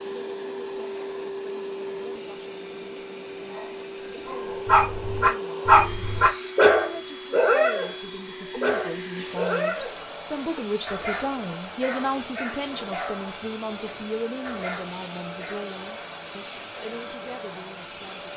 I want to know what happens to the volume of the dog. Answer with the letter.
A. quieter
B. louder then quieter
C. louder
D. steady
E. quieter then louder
A.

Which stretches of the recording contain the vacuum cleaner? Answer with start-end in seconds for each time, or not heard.
0.0-18.3.